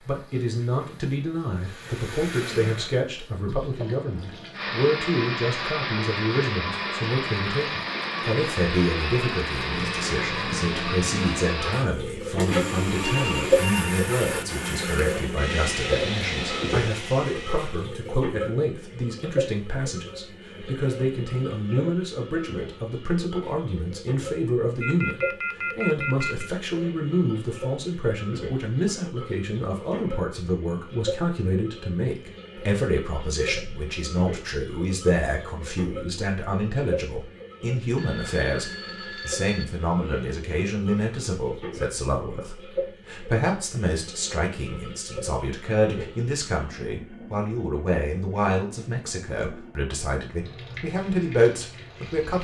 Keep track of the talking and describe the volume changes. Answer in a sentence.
The loudness of the talking stays about the same.